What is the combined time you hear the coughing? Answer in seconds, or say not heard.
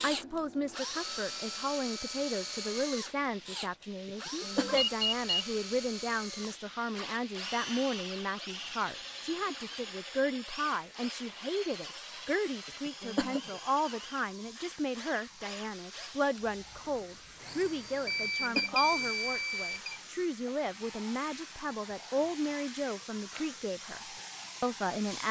3 s.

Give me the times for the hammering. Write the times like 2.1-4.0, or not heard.
not heard.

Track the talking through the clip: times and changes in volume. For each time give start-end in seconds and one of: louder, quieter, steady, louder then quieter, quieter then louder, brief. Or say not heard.
0.0-24.0 steady
24.6-25.2 brief.